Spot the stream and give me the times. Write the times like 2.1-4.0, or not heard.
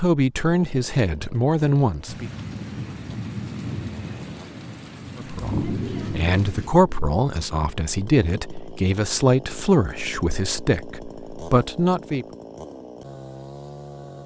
not heard.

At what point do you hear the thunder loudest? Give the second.
6 s.